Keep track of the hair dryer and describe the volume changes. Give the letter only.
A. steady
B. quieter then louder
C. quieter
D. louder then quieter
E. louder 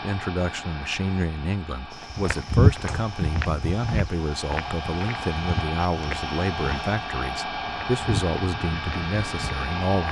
E.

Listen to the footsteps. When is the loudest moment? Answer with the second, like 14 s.
3 s.